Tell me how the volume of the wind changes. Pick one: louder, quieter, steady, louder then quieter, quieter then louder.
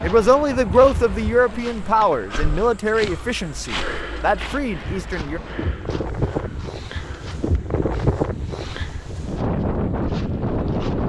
quieter then louder.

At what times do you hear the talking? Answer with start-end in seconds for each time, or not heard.
0.0-5.4.